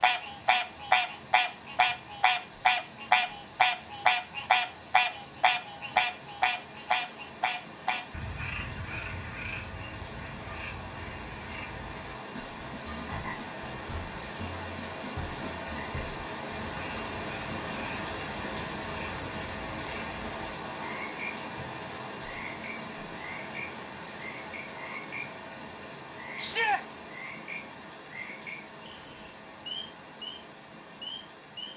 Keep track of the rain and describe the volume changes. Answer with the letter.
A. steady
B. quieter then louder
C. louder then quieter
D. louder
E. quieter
C.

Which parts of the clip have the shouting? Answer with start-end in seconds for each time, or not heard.
26.4-26.8.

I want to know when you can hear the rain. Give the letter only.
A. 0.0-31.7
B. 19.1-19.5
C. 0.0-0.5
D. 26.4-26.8
A.